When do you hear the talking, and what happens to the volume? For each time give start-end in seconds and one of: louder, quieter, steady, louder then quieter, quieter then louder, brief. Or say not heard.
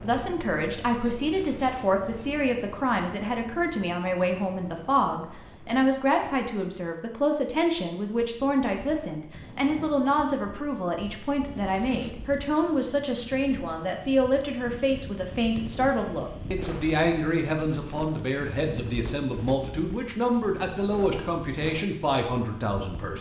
0.0-23.1 steady.